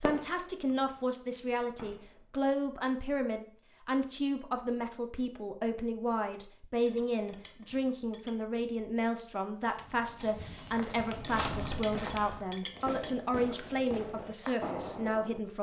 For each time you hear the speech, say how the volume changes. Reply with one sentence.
The speech can be heard from 0.0 to 15.5 s, at a steady volume.